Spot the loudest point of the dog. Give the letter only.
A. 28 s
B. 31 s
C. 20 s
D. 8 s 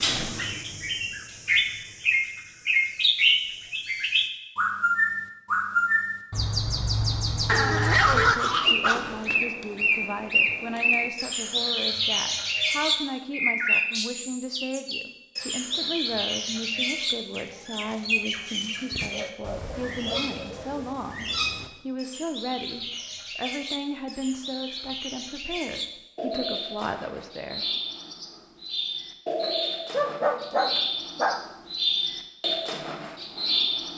D.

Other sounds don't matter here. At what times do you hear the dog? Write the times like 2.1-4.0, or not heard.
7.5-9.4, 18.9-20.8, 29.9-31.4.